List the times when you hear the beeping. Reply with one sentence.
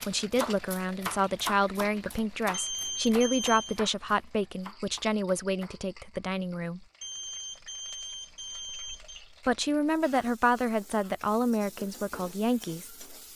You can hear the beeping from 2.5 to 3.8 s and from 7.0 to 9.2 s.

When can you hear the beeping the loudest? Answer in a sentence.
The volume of the beeping peaks at 3 seconds.